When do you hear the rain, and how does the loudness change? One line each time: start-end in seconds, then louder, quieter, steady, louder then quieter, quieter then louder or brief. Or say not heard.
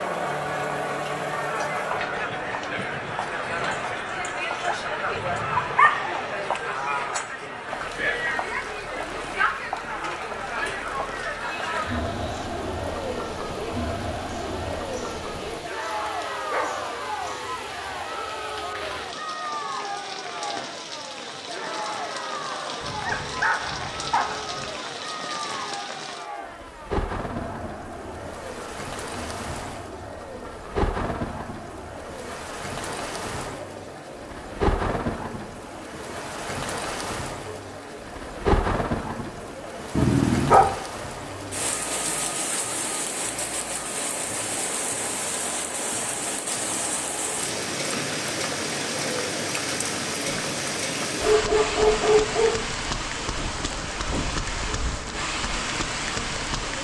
0.0-56.7 louder.